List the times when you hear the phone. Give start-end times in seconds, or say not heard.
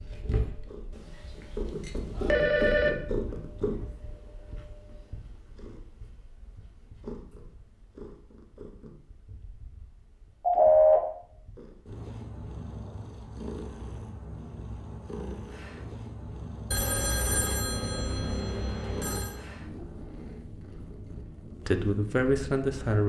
1.2-2.9, 10.4-11.0, 16.7-19.4.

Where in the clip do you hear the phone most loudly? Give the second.
11 s.